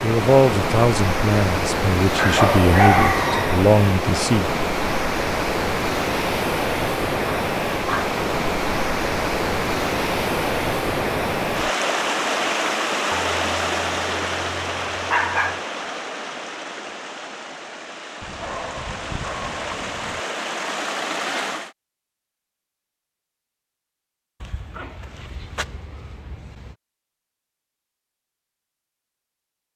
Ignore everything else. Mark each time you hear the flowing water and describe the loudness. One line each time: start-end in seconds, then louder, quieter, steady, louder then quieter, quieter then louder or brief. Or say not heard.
0.0-21.8 quieter.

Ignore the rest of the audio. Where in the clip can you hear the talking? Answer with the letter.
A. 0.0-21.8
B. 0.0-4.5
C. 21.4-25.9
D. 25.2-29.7
B.